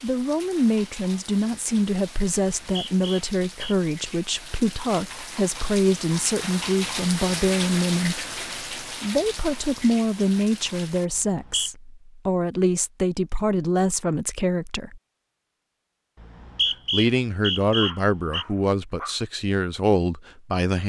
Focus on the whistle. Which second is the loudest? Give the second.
17 s.